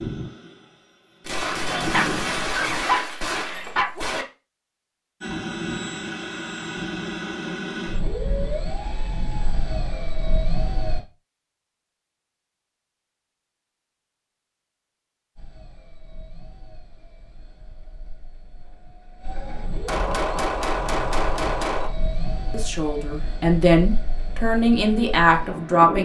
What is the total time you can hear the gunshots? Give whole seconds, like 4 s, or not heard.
5 s.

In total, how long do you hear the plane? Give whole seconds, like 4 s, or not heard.
19 s.